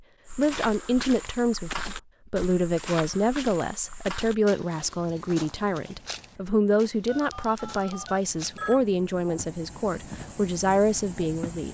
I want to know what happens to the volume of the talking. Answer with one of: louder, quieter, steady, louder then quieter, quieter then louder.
steady.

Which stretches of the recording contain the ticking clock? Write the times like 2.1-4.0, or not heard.
not heard.